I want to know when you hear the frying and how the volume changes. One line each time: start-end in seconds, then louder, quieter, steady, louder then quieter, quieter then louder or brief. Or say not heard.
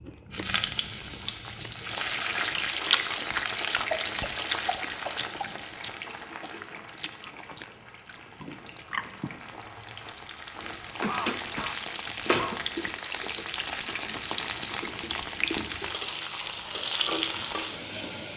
0.0-18.3 quieter then louder.